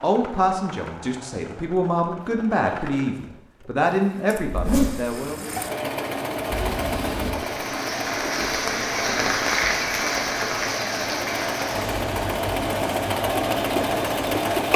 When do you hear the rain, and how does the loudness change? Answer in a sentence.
The rain can be heard from 6.5 to 14.6 s, getting louder then quieter.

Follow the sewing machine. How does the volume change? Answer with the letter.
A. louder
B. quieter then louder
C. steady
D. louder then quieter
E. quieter
A.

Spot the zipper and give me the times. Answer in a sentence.
You can hear the zipper from 4.5 to 5.2 s.